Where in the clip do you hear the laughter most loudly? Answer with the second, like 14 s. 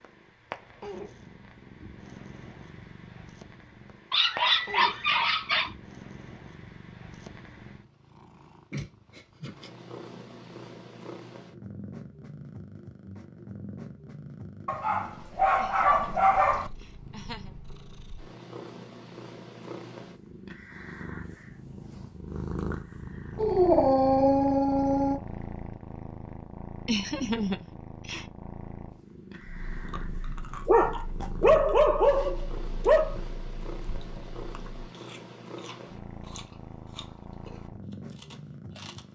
27 s.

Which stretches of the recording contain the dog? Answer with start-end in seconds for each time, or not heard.
4.1-5.7, 14.7-16.7, 23.4-25.2, 30.6-33.1.